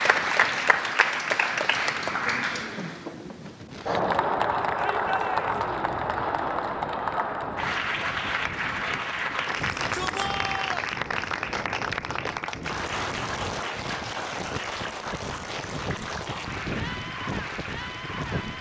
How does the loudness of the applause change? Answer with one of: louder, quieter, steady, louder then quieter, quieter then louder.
quieter.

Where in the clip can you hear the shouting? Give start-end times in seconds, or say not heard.
4.8-5.5, 9.6-10.9.